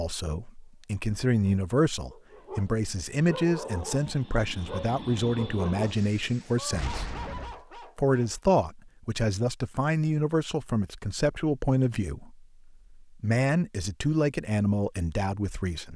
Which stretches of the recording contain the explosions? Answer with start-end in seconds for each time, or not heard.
6.7-7.7.